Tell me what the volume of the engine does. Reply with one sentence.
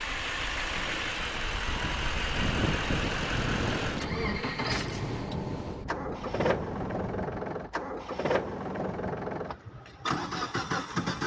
The loudness of the engine stays about the same.